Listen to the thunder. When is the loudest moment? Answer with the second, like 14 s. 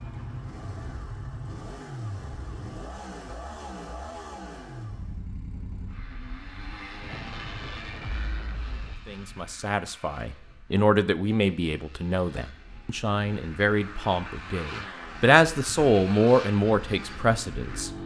7 s.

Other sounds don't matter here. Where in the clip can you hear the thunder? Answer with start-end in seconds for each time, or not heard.
7.0-8.9.